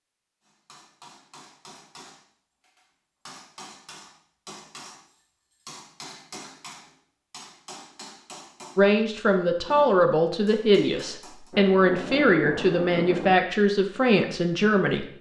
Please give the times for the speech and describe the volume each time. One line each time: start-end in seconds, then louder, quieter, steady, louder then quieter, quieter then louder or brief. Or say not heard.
8.8-15.1 steady.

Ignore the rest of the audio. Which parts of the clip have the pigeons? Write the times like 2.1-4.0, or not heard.
not heard.